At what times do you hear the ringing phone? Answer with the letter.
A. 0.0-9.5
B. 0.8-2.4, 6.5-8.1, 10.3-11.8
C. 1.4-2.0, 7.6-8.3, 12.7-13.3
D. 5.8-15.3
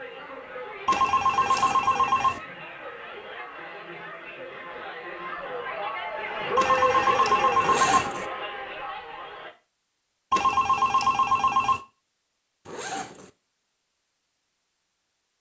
B.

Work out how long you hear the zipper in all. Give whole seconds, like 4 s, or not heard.
2 s.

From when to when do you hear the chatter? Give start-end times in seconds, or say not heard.
0.0-9.5.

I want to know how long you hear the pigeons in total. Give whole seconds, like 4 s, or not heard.
not heard.